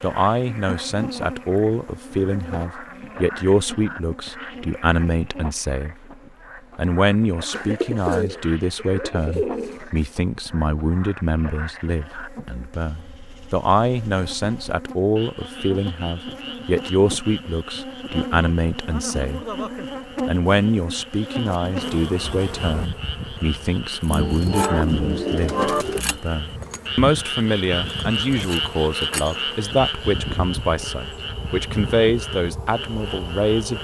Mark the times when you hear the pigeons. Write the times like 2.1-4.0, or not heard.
7.5-10.2, 24.1-26.0.